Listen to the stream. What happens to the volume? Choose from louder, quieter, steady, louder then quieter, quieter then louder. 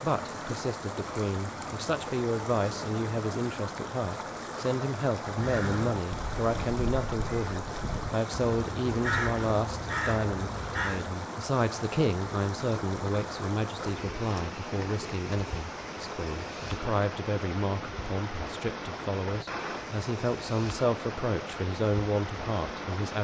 steady.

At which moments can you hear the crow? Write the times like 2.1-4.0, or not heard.
5.2-11.1.